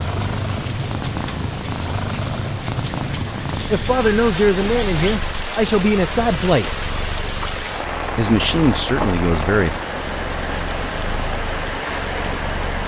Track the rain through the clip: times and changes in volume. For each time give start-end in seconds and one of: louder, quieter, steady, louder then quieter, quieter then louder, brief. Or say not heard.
0.0-12.8 steady.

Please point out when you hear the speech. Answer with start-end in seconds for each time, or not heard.
3.7-6.8, 8.2-9.8.